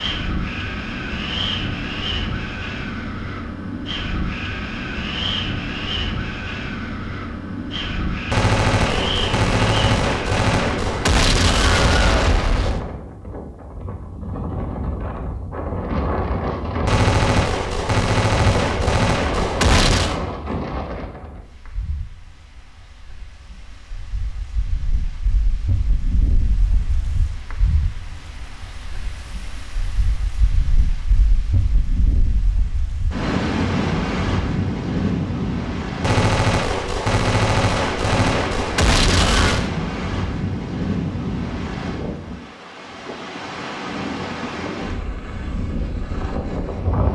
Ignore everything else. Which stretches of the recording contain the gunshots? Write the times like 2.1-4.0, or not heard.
8.3-12.8, 16.9-20.1, 36.0-39.7.